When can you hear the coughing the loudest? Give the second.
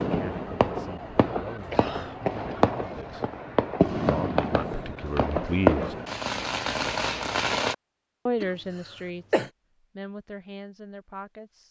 9 s.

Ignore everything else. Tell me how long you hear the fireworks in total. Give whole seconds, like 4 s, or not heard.
8 s.